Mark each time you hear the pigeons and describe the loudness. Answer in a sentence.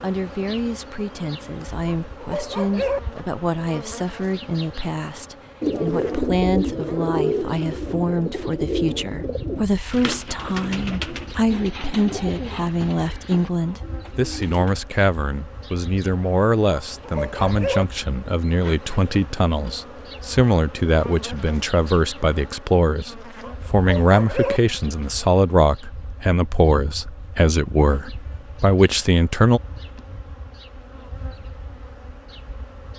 You can hear the pigeons from 5.6 to 14.8 s, getting quieter.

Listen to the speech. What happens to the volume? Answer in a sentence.
The volume of the speech goes up.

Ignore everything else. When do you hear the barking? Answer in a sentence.
The barking can be heard from 2.0 to 3.0 s, from 16.9 to 17.9 s and from 23.4 to 24.6 s.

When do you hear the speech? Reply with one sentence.
The speech can be heard from 0.0 to 29.6 s.